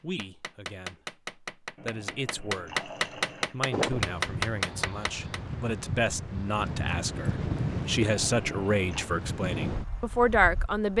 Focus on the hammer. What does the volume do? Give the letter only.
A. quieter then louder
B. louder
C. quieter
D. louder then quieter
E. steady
B.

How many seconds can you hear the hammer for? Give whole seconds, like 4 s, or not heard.
5 s.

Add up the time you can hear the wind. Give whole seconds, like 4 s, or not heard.
7 s.